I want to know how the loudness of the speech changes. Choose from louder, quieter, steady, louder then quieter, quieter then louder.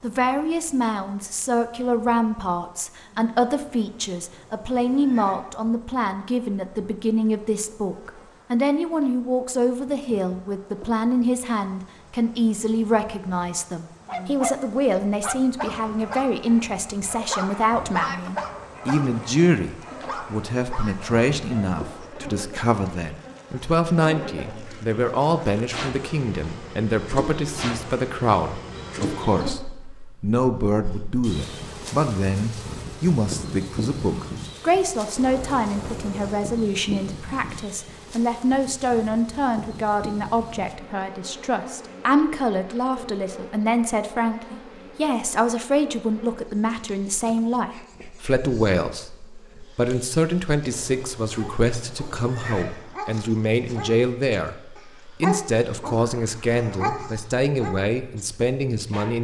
steady.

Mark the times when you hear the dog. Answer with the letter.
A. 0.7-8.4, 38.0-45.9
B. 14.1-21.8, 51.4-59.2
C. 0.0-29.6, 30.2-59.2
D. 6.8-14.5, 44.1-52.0
B.